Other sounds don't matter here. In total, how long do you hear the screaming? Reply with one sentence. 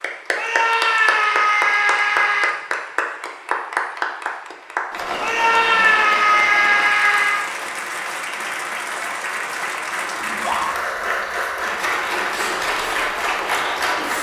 You can hear the screaming for 5 seconds altogether.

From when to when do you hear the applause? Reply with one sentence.
The applause can be heard from 0.0 to 14.1 s.